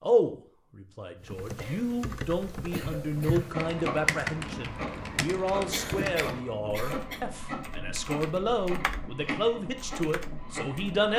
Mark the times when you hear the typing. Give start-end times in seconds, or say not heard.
1.2-11.0.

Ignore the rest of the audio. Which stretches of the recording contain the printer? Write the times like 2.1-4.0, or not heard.
3.0-11.1.